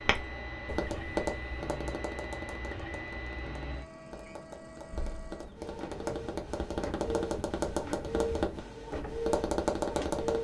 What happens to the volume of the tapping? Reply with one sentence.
The loudness of the tapping goes down, then up.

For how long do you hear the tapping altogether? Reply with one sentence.
You can hear the tapping for 10 seconds altogether.